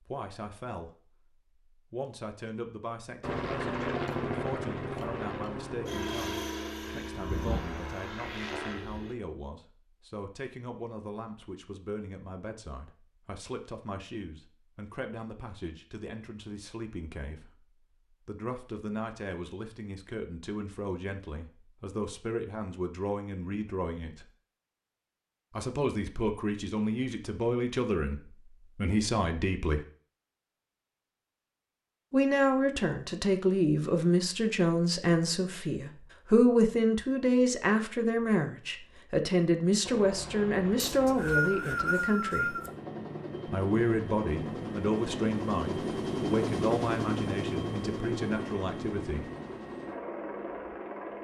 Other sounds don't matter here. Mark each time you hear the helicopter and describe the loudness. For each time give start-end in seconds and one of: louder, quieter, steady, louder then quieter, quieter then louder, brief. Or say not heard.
3.2-9.2 quieter
39.8-51.1 louder then quieter.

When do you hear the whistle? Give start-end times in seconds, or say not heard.
40.9-42.7.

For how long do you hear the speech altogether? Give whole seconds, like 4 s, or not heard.
44 s.